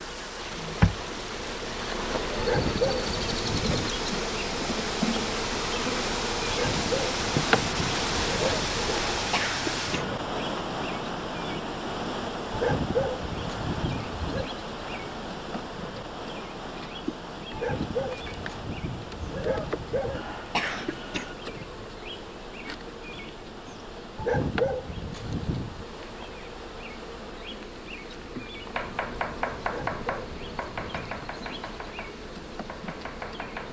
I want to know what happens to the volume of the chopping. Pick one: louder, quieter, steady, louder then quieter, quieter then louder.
quieter.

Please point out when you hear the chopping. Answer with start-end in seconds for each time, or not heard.
28.7-33.6.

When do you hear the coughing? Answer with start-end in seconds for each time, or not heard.
9.2-10.2, 20.1-21.4.